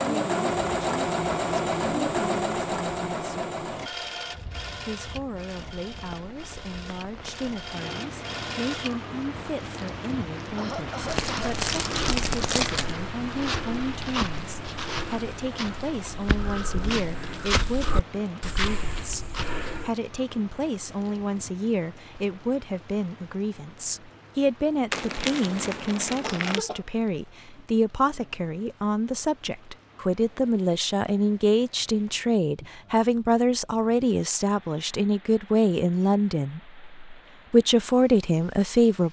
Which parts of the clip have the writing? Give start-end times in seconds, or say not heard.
not heard.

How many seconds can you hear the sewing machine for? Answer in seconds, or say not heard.
9 s.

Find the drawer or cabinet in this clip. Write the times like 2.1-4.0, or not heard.
not heard.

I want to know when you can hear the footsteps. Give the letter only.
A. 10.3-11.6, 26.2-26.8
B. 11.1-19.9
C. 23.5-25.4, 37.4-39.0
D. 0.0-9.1
B.